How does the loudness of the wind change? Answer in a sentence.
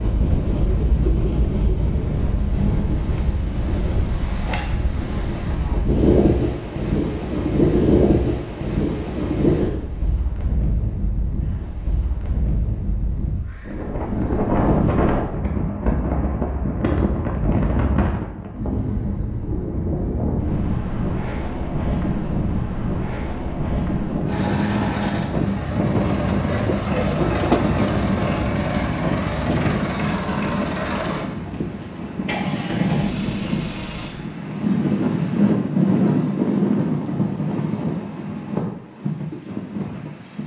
The loudness of the wind stays about the same.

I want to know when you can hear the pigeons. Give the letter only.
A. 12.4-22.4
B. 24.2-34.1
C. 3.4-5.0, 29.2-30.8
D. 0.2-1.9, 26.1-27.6
D.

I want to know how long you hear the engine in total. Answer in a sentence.
The engine can be heard for 10 seconds in total.